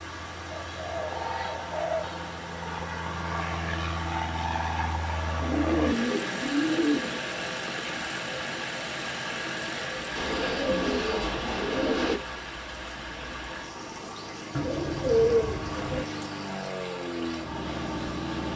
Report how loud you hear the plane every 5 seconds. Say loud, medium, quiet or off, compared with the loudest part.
loud, loud, medium, loud.